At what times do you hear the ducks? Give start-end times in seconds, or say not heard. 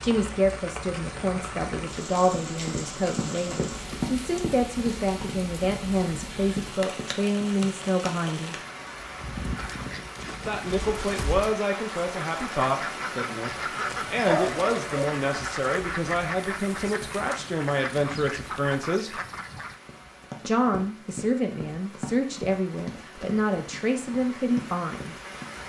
9.6-19.8.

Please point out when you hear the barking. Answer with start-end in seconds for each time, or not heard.
14.2-15.0.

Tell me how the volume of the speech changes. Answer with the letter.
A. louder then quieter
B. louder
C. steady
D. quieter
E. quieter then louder
C.